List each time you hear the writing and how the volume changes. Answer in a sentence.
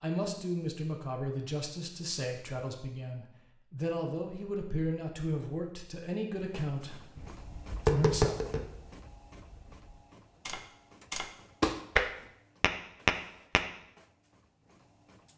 You can't hear the writing here.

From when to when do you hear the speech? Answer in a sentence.
You can hear the speech from 0.0 to 8.3 s.